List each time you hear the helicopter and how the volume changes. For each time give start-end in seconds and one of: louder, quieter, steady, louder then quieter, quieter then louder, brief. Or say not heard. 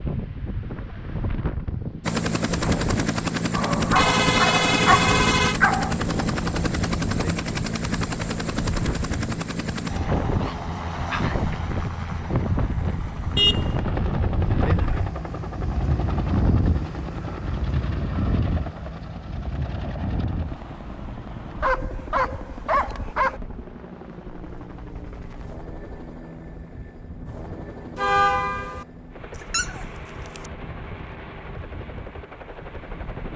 2.0-33.3 quieter.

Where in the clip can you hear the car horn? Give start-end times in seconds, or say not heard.
4.0-5.5, 13.3-15.1, 27.9-28.9.